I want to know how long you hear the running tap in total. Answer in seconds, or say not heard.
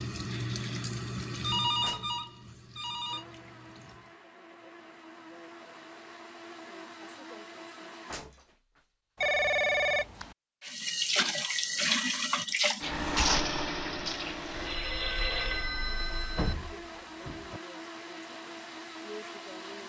9 s.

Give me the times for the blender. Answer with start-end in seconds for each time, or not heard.
3.0-8.2, 14.1-19.8.